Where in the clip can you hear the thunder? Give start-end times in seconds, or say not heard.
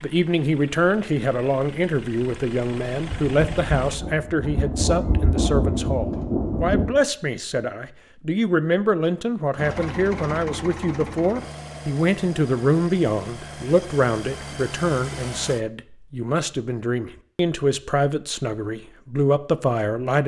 3.0-7.0.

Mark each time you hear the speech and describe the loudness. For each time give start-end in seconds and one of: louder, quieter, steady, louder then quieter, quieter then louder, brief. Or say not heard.
0.0-20.2 steady.